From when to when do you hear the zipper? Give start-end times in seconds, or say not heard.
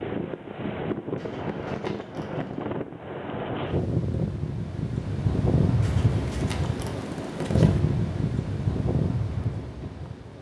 1.1-2.6, 5.8-7.8.